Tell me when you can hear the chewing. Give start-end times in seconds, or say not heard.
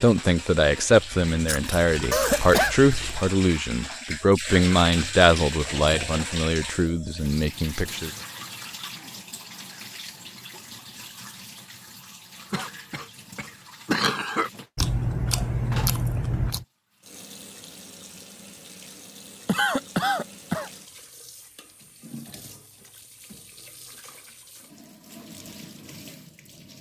1.3-3.3, 14.8-16.6.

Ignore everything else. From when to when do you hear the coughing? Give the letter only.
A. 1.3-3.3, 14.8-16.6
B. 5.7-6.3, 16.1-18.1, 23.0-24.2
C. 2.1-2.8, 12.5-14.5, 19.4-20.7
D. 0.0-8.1
C.